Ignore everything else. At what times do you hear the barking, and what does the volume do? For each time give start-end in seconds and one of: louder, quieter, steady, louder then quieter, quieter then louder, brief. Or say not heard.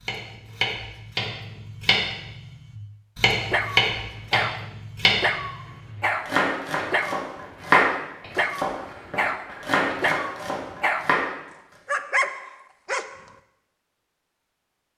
3.4-11.2 steady
11.8-13.2 brief.